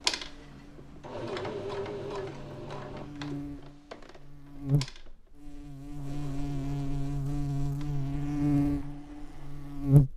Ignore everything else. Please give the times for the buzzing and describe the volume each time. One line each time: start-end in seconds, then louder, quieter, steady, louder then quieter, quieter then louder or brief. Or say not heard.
0.0-10.1 louder.